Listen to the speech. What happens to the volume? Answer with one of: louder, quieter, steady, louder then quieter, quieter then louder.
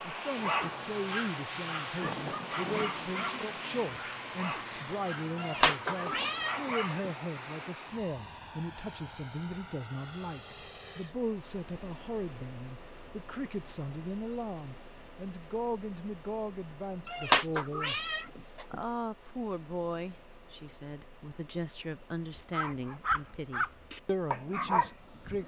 steady.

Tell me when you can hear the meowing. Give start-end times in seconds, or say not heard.
5.3-7.1, 17.1-18.8.